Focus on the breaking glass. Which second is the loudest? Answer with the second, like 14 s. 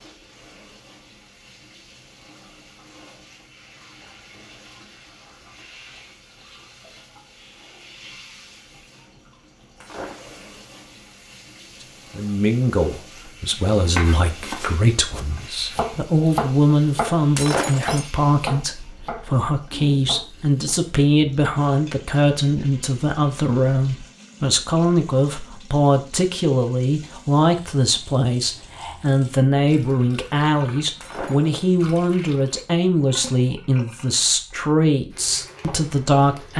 18 s.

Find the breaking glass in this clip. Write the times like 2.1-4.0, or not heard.
9.8-10.4, 17.4-18.1, 31.0-31.6.